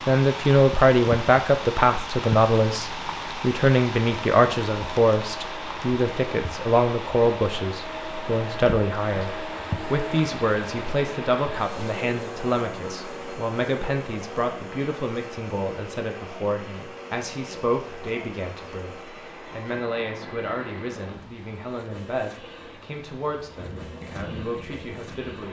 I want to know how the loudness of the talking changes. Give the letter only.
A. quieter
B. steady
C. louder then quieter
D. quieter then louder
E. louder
A.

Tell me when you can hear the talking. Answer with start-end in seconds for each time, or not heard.
0.1-25.4.